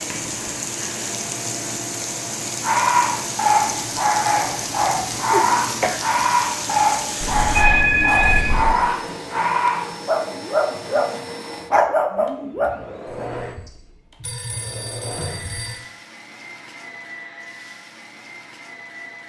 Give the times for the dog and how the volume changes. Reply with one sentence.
You can hear the dog from 2.6 to 13.2 s, at a steady volume.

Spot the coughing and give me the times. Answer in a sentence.
The coughing can be heard from 5.3 to 6.2 s.